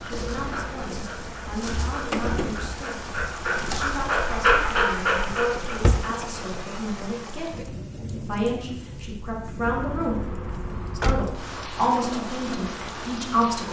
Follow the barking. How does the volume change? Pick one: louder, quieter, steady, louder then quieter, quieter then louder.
louder.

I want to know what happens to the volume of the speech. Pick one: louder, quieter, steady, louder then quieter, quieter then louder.
louder.